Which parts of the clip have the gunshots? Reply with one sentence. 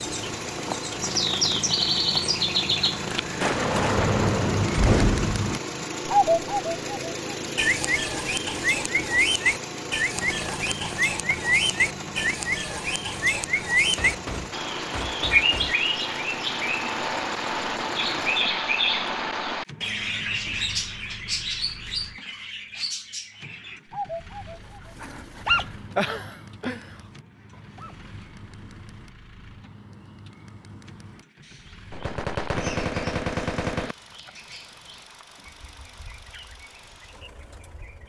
You can hear the gunshots from 3.4 to 5.3 s, from 13.9 to 15.8 s and from 31.9 to 34.0 s.